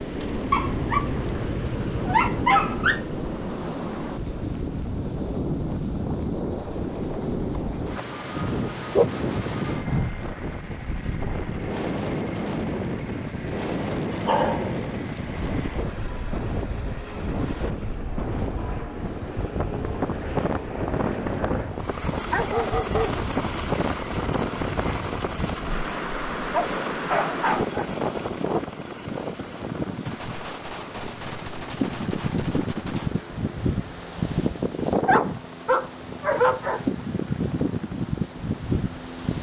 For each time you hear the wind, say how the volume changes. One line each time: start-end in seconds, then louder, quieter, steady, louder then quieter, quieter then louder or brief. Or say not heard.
0.0-39.3 steady.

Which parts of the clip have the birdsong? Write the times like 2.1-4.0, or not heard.
not heard.